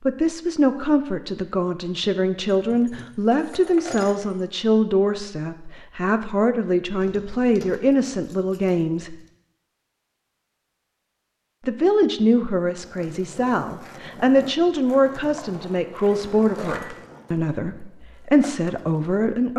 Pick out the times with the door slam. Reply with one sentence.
The door slam can't be heard in this clip.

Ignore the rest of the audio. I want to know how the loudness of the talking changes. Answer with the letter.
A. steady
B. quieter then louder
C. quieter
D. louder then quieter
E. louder
A.